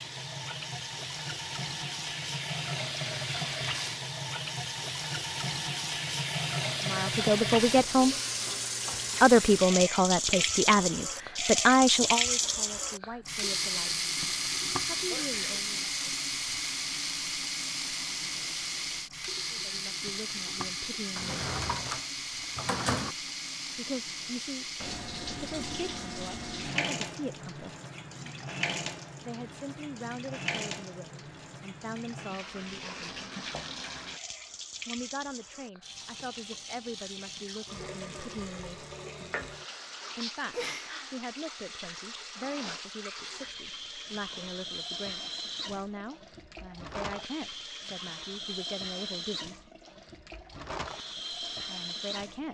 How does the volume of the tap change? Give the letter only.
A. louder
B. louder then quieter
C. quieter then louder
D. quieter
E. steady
D.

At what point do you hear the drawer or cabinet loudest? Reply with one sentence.
The volume of the drawer or cabinet peaks at 23 seconds.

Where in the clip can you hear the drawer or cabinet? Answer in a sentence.
The drawer or cabinet can be heard from 21.1 to 23.1 s.